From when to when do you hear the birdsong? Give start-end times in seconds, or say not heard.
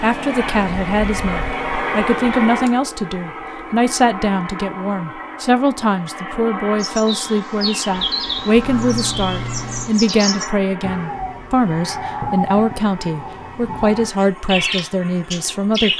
6.8-15.9.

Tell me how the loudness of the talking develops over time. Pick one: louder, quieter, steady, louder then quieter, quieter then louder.
steady.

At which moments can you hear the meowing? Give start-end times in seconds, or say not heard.
8.6-9.9.